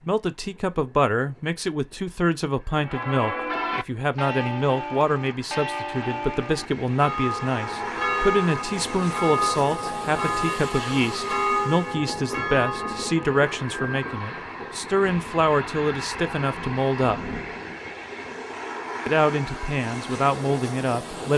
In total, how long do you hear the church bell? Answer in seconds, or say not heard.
11 s.